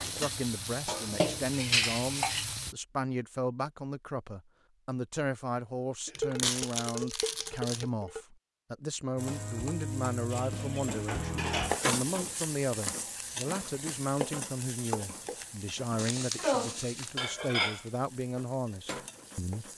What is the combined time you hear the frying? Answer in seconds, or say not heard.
13 s.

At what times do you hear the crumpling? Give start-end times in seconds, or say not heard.
6.0-7.8, 15.9-17.1.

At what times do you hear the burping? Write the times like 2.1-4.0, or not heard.
not heard.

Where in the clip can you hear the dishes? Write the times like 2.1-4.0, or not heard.
0.8-2.5, 6.2-8.2, 10.3-11.8, 16.4-17.9.